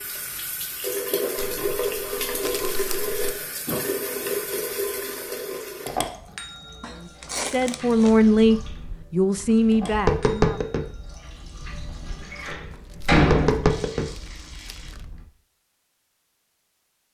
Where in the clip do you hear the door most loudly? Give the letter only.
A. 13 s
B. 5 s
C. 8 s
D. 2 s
A.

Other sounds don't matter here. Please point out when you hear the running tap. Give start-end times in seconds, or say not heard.
0.0-14.9.